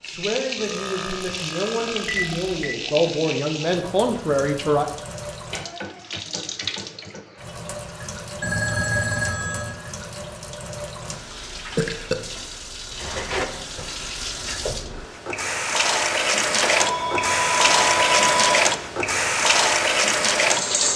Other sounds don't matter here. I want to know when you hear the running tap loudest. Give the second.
18 s.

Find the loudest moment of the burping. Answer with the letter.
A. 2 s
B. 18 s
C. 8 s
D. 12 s
D.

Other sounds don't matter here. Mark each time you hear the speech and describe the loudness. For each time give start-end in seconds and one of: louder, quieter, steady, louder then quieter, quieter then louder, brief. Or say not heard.
0.0-4.8 louder.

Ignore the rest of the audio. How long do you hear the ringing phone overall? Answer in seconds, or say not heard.
4 s.